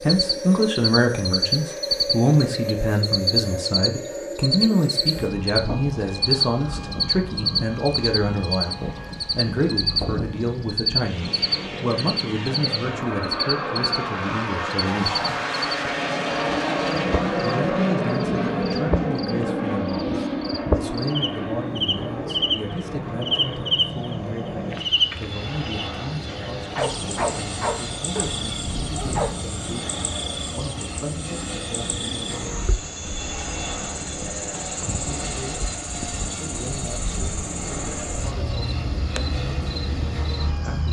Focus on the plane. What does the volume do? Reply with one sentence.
The volume of the plane goes up, then down.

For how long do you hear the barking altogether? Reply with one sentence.
You can hear the barking for 3 seconds altogether.